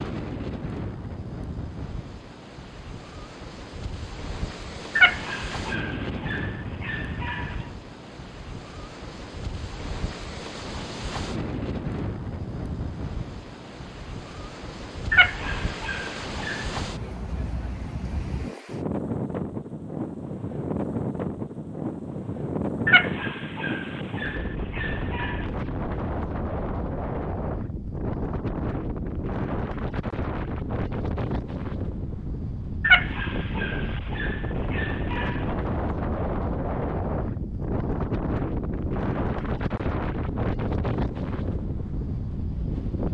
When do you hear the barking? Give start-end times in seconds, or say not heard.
5.0-7.5, 15.1-16.6, 22.9-25.4, 32.8-35.5.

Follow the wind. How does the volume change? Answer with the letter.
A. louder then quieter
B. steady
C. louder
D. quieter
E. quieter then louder
C.